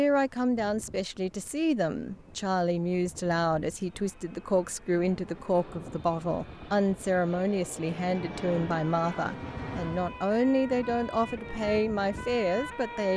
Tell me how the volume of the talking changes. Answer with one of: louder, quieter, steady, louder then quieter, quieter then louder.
steady.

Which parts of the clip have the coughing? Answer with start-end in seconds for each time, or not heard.
not heard.